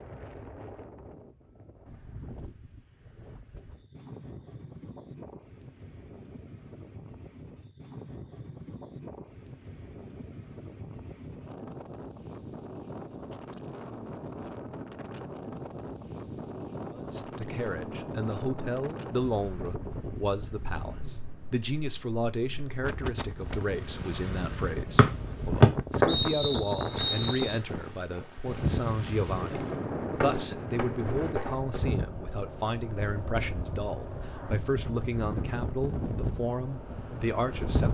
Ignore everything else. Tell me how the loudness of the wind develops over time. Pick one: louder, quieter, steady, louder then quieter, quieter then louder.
louder.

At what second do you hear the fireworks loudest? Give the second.
26 s.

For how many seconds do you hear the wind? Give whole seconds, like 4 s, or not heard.
38 s.